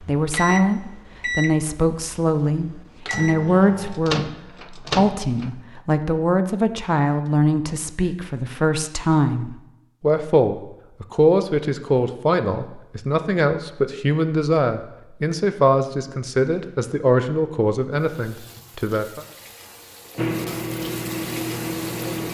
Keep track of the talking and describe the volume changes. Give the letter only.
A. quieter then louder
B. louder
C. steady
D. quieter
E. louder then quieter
C.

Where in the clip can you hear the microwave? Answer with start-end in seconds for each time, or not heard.
0.0-5.5, 20.1-22.2.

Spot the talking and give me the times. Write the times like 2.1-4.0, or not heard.
0.0-19.2.